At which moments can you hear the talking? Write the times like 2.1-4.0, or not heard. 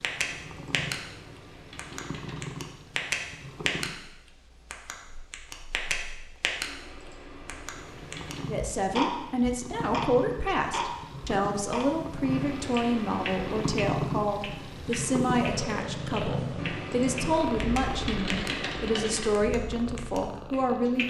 8.4-21.0.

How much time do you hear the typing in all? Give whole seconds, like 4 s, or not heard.
9 s.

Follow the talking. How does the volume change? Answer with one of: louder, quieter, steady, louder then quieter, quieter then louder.
steady.